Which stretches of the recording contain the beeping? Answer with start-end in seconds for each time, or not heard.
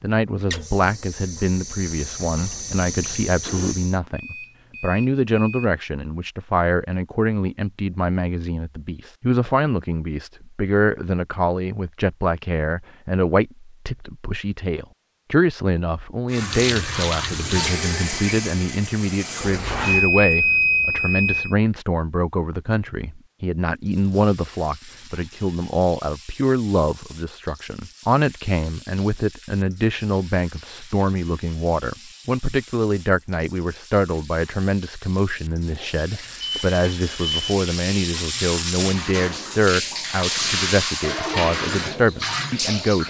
3.5-5.7, 19.8-21.6, 35.7-37.6.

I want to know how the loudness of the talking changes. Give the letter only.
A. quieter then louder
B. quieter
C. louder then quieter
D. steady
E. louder
D.